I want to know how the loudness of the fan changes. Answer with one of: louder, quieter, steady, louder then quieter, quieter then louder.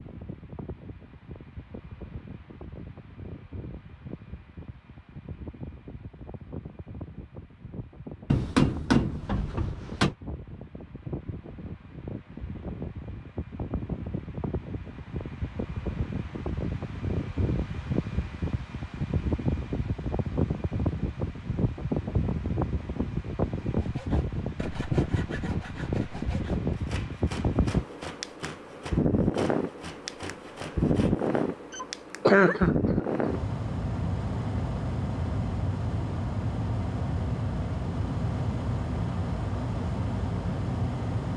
louder.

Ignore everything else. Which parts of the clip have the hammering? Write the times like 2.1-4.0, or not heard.
8.3-10.2.